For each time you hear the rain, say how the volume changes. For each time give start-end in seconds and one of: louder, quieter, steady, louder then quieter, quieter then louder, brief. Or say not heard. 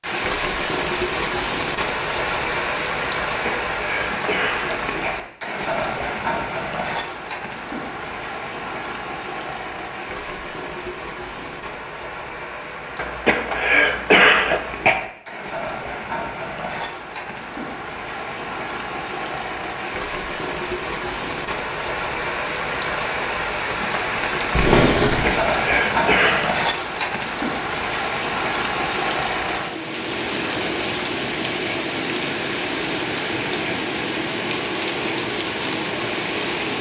0.0-36.7 quieter then louder.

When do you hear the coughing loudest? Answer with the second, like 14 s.
14 s.